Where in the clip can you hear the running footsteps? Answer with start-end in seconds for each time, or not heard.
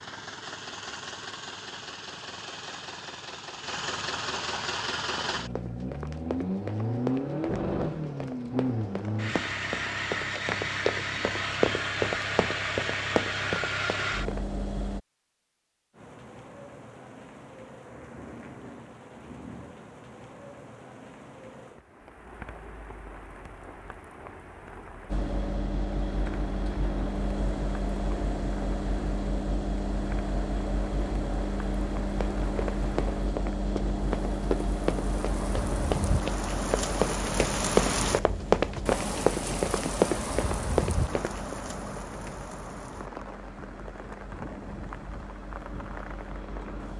5.2-14.4, 32.2-41.5.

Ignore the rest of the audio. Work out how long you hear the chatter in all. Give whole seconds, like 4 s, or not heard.
not heard.